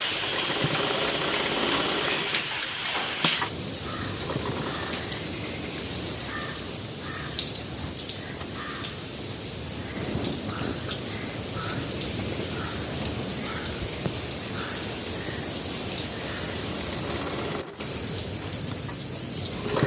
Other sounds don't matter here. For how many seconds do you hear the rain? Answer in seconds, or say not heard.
20 s.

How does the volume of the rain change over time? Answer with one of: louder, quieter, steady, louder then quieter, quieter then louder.
steady.